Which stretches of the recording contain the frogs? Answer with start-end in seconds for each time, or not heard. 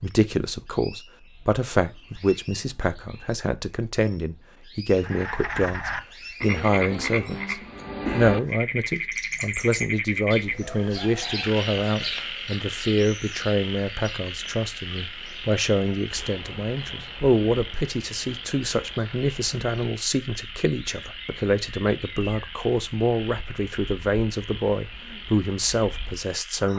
4.9-26.7.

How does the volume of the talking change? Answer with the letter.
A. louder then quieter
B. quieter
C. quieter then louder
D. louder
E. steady
E.